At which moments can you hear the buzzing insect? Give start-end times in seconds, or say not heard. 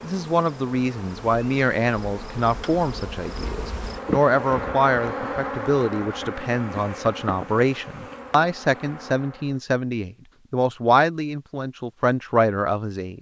0.0-9.6.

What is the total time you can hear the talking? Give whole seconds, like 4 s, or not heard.
13 s.